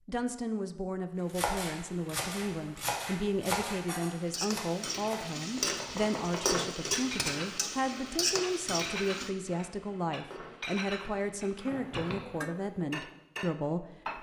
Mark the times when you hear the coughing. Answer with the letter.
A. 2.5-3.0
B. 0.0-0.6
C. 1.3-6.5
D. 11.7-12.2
D.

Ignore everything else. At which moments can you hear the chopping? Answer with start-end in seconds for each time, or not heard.
1.3-6.5.